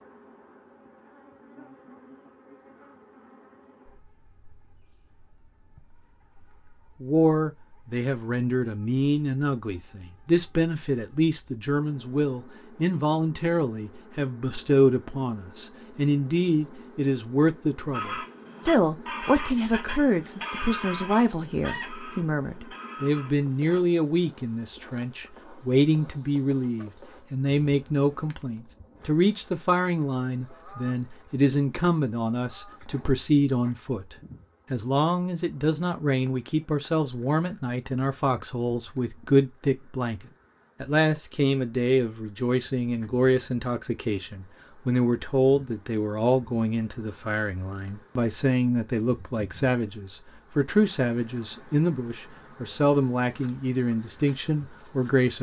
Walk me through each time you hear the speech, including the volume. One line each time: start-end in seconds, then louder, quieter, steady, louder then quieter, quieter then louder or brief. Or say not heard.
7.0-55.3 steady.